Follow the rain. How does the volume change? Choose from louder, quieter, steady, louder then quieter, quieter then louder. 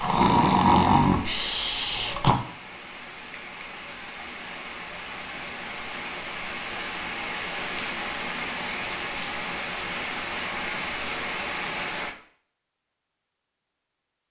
louder.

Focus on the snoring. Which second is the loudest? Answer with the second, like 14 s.
1 s.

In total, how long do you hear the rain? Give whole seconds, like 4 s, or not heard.
12 s.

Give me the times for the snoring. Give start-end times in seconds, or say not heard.
0.0-2.4.